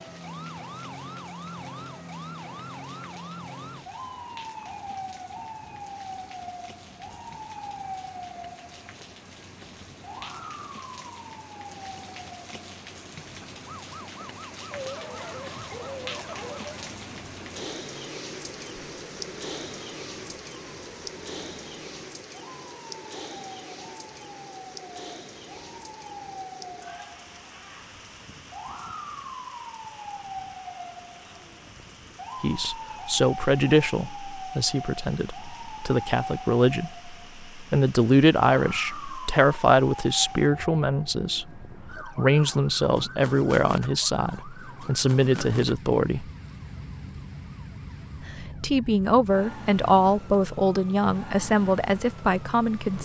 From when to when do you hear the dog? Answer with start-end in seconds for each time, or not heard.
14.7-16.8.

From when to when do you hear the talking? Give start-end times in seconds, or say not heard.
32.4-46.3, 48.4-53.0.